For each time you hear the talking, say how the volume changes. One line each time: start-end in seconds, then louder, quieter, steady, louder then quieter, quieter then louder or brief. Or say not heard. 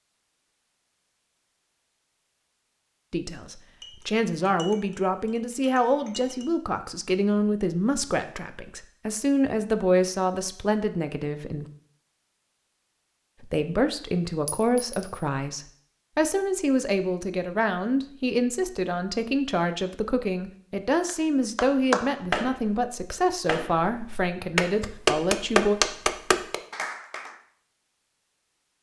3.1-11.7 steady
13.4-25.8 steady.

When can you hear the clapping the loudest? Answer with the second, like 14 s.
26 s.